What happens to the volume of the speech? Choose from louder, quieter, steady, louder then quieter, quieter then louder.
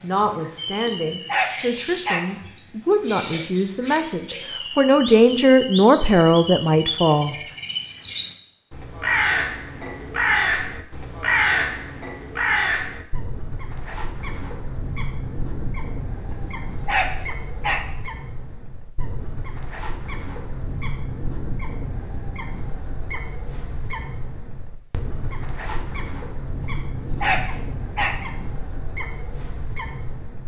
louder.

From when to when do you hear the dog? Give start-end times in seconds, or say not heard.
0.7-2.3, 16.3-17.9, 26.6-28.2.